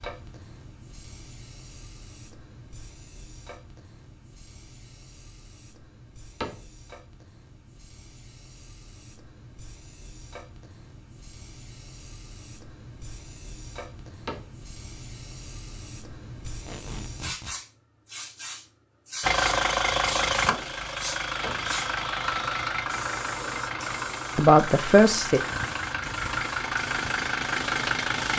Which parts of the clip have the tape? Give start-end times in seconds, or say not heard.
16.4-17.6.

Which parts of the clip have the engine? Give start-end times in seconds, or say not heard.
19.2-28.3.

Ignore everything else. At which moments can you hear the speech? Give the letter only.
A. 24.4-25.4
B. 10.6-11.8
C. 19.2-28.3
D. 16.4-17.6
A.